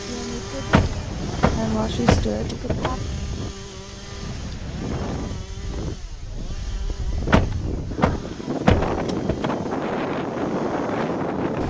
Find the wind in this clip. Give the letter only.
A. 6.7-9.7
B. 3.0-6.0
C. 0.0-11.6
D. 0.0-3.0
C.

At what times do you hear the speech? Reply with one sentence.
The speech can be heard from 0.0 to 3.0 s.